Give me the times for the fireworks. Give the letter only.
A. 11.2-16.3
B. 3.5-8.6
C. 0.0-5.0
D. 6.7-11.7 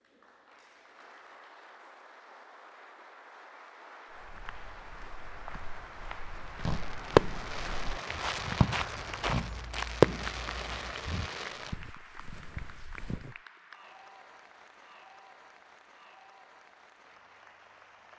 D.